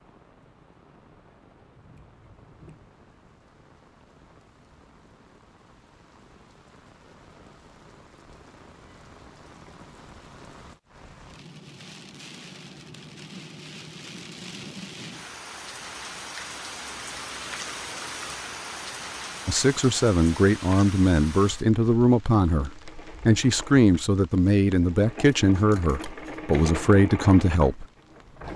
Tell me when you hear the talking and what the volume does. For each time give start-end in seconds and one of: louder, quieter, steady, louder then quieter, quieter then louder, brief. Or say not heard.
19.4-27.9 steady.